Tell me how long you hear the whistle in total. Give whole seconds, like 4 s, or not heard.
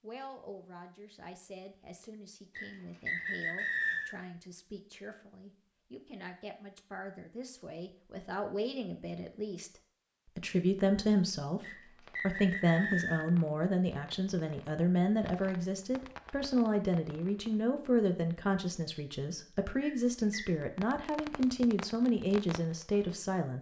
4 s.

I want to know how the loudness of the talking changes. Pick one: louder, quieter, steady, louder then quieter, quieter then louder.
louder.